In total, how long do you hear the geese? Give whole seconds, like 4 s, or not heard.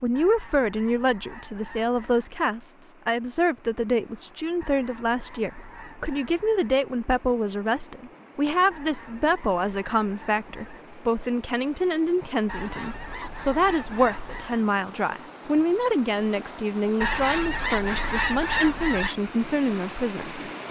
11 s.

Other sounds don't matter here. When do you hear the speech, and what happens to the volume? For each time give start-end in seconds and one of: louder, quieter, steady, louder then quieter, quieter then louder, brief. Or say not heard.
0.0-20.6 steady.